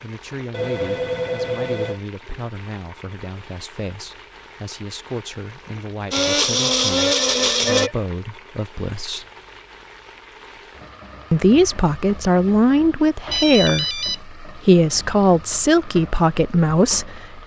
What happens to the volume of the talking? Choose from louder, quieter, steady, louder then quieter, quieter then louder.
louder.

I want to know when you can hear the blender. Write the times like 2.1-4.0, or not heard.
6.1-7.9.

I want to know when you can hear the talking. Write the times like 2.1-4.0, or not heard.
0.0-9.2, 11.3-17.4.